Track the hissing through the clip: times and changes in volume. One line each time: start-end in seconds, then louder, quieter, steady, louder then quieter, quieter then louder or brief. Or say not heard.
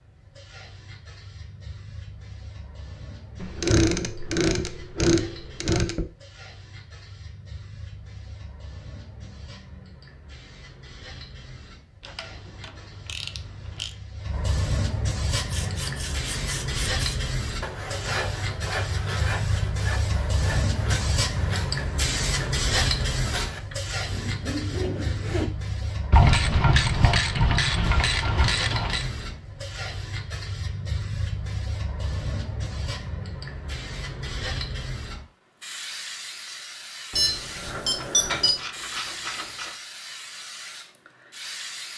0.0-41.9 louder then quieter.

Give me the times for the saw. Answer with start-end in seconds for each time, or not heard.
15.3-25.5.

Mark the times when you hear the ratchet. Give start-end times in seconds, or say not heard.
3.4-6.0, 12.0-13.9, 26.1-29.1, 38.0-39.8.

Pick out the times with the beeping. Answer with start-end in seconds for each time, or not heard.
37.1-38.6.